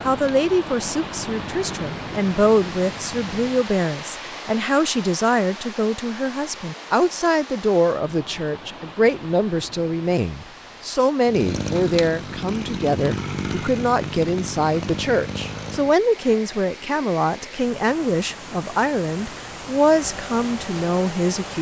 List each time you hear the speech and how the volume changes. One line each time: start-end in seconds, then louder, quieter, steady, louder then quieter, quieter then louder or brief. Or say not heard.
0.0-21.5 steady.